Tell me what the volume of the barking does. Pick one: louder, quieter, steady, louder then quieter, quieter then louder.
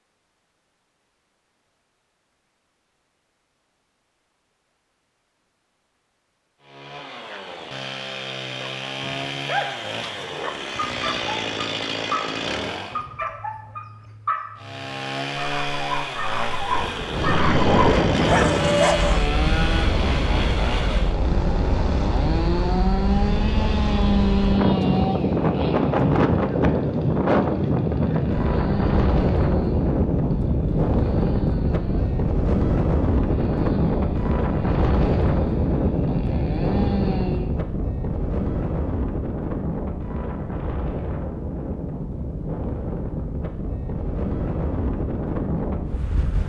louder.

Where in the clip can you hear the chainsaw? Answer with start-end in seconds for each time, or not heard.
6.6-13.1, 14.6-37.6.